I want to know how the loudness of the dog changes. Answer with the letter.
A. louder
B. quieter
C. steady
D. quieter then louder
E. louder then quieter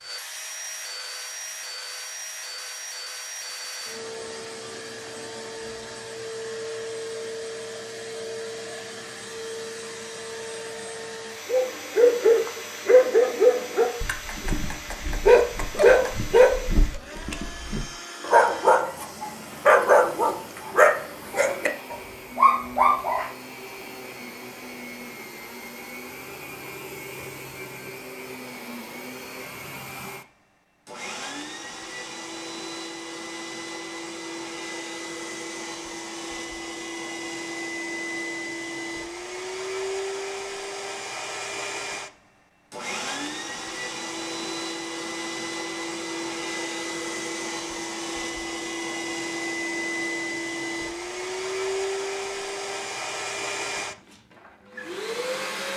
C.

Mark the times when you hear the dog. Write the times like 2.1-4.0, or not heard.
11.4-23.3.